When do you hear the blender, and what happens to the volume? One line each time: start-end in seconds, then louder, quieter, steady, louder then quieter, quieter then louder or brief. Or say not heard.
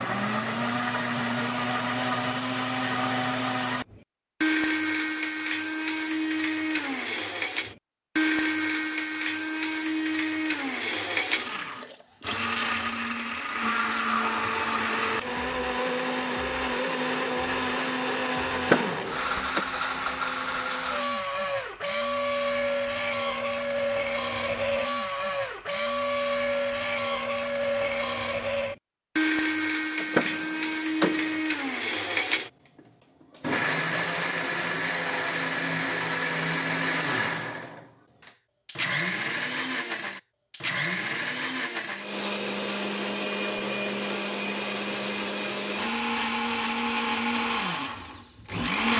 0.0-48.9 steady.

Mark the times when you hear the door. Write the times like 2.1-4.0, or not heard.
18.5-19.6, 29.9-31.4.